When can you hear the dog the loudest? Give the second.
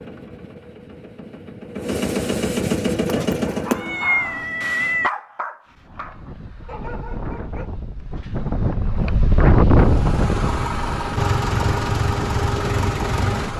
5 s.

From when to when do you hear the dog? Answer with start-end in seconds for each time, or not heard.
3.0-8.4.